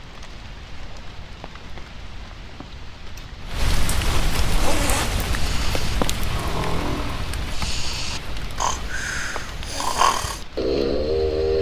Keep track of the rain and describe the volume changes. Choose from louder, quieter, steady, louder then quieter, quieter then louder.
louder then quieter.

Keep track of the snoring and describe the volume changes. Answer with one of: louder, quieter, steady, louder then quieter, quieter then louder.
louder.